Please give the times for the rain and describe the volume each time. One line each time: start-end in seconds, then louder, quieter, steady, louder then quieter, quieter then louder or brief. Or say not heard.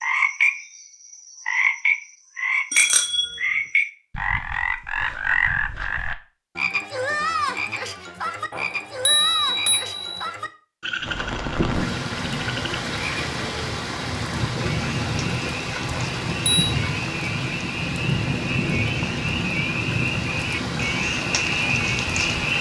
11.0-22.5 steady.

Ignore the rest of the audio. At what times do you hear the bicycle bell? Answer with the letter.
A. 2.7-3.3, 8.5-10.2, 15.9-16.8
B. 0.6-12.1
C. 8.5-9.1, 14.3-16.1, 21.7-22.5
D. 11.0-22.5
A.